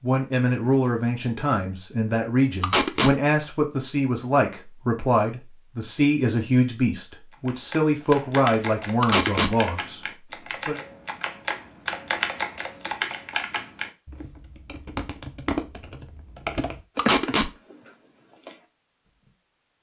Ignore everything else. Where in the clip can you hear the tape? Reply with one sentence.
The tape can be heard from 2.6 to 3.1 s, from 9.0 to 9.6 s and from 16.9 to 17.5 s.